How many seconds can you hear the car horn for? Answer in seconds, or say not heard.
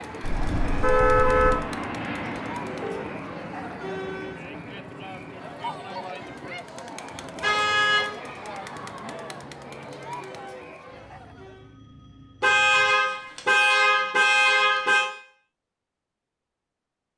5 s.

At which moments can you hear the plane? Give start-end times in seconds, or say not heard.
0.0-10.4.